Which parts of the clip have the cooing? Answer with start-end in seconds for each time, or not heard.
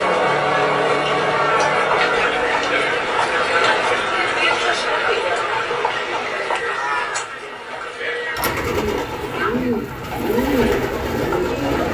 8.3-11.9.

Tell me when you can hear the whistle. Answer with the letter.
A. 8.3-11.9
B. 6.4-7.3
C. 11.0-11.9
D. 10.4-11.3
B.